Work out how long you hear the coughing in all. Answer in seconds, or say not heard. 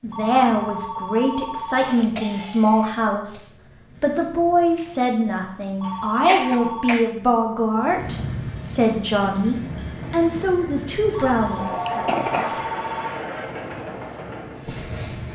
4 s.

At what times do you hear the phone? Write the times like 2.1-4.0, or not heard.
0.1-1.9, 5.8-7.0, 11.1-13.2.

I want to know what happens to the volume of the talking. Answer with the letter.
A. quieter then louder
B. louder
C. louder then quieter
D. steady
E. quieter
D.